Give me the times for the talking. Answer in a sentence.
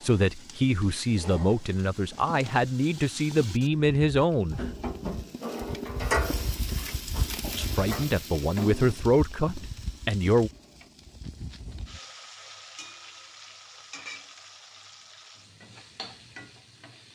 The talking can be heard from 0.0 to 4.7 s and from 7.5 to 10.5 s.